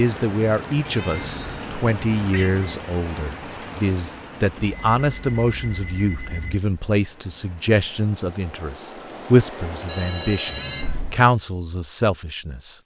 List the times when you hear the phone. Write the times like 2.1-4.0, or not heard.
1.2-1.7, 4.5-6.6, 9.8-11.1.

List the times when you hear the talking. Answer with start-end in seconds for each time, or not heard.
0.0-12.8.